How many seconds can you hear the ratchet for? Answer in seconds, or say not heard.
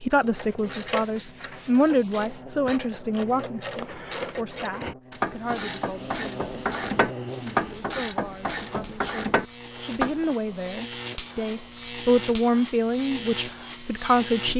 10 s.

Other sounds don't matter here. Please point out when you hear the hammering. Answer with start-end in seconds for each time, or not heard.
not heard.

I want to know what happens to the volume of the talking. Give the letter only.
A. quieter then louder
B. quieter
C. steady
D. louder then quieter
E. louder
A.